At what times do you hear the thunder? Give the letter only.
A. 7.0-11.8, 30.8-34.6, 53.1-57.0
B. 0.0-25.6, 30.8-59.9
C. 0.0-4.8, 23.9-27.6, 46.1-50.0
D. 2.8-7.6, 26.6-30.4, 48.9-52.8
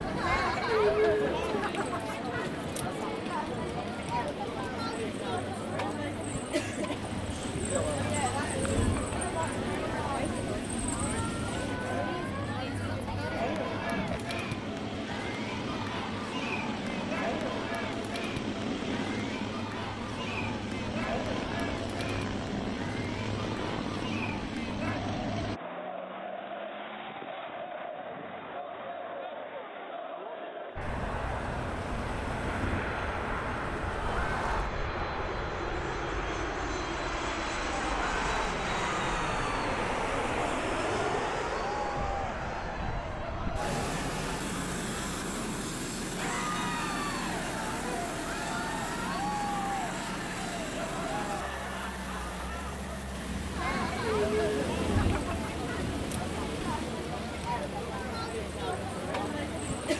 A.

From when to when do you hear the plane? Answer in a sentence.
The plane can be heard from 0.0 to 25.6 s and from 30.8 to 59.9 s.